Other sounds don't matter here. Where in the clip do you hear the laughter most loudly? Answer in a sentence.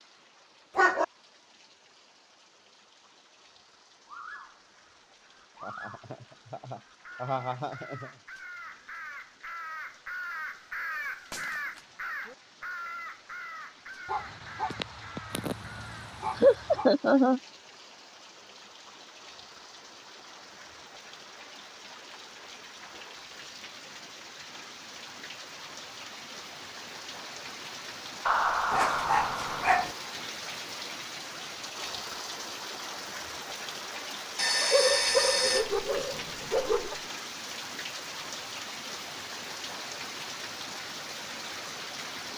The volume of the laughter peaks at 17 seconds.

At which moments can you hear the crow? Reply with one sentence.
You can hear the crow from 4.0 to 16.1 s.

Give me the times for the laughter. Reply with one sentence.
The laughter can be heard from 5.6 to 8.1 s, from 16.4 to 17.4 s and from 28.2 to 29.9 s.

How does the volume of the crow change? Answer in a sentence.
The loudness of the crow goes up, then down.